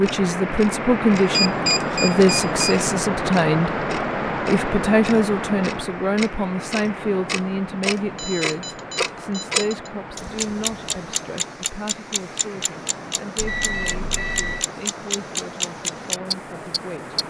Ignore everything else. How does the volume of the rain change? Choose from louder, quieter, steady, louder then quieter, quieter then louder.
quieter.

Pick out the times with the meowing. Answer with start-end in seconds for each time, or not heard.
not heard.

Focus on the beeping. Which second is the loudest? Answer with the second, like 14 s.
2 s.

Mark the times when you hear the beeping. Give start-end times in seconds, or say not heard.
1.3-2.8, 8.2-9.9, 13.3-14.7.